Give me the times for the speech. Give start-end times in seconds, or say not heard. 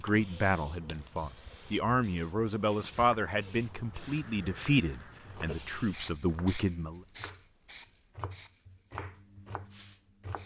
0.0-7.0.